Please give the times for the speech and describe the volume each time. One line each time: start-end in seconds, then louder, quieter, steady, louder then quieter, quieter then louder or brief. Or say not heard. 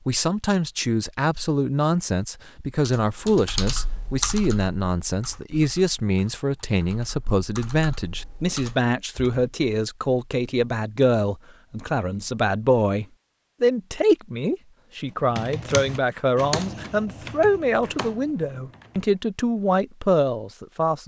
0.1-21.0 steady.